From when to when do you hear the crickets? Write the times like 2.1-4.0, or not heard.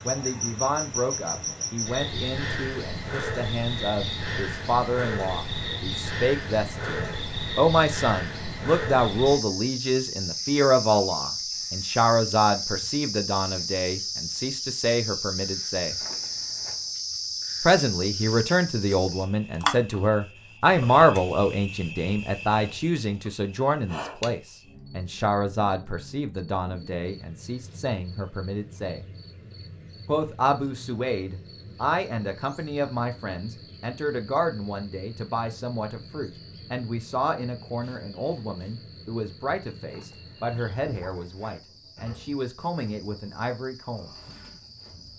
0.0-45.1.